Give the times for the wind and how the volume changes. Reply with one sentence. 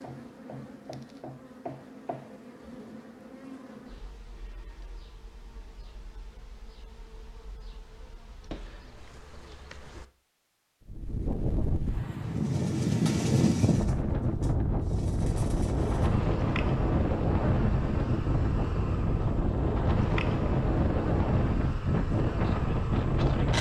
The wind can be heard from 10.8 to 23.5 s, at a steady volume.